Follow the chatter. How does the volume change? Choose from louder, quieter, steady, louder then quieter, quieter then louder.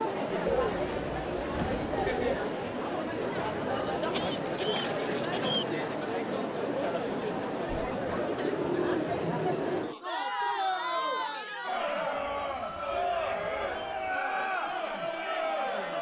steady.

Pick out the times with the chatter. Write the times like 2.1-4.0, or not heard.
0.0-15.9.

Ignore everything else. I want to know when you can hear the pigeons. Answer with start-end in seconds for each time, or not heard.
0.5-2.5, 4.0-5.8, 8.1-10.1, 12.2-14.2.